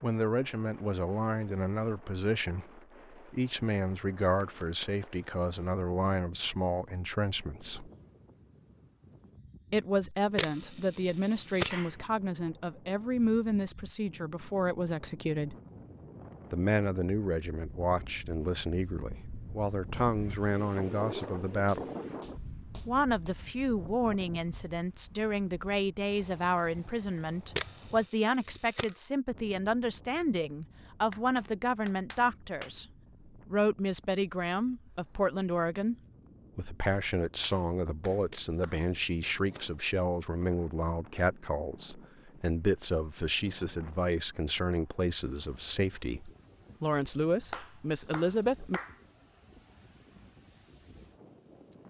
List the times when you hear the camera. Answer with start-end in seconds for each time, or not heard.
10.3-11.8, 27.6-28.9, 38.3-39.8.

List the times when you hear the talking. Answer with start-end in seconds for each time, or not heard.
0.0-7.9, 9.7-15.6, 16.5-21.9, 22.9-32.9, 33.5-36.0, 36.5-48.8.